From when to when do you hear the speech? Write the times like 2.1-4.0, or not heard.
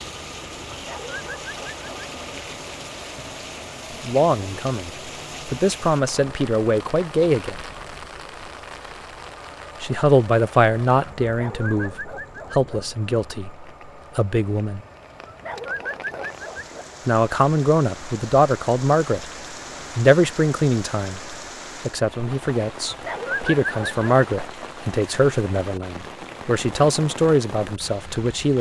4.0-7.5, 9.8-14.8, 17.1-19.3, 19.9-28.5.